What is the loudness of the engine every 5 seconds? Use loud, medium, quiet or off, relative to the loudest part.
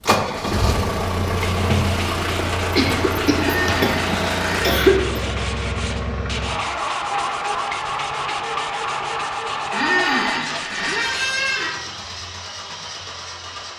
loud, loud, medium.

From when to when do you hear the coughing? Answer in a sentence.
You can hear the coughing from 2.7 to 5.2 s.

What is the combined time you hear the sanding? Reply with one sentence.
The sanding can be heard for 10 seconds in total.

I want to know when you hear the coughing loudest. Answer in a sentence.
The loudest moment of the coughing is at 5 seconds.